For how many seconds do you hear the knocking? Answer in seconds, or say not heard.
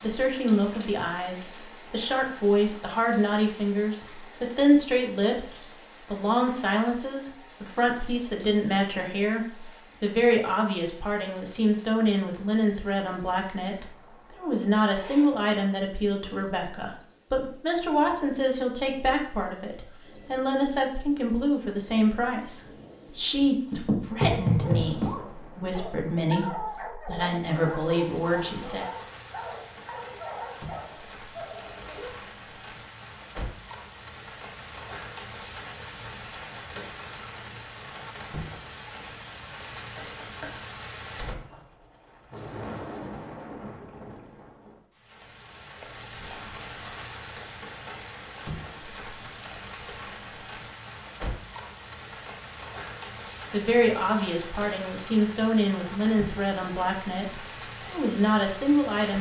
2 s.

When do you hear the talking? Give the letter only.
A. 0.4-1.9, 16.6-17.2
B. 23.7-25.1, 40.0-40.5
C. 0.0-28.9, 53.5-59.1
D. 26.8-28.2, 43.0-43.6
C.